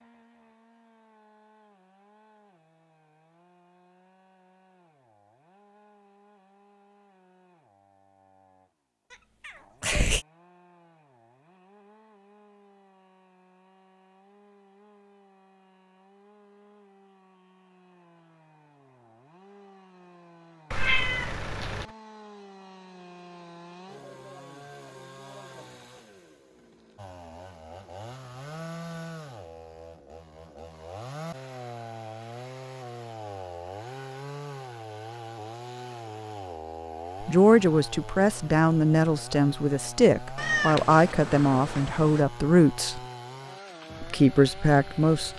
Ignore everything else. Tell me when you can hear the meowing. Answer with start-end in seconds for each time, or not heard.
9.1-10.2, 20.7-21.9, 40.4-42.2.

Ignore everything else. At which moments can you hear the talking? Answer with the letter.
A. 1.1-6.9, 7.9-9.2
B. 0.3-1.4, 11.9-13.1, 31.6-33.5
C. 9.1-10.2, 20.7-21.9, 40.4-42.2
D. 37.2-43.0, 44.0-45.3
D.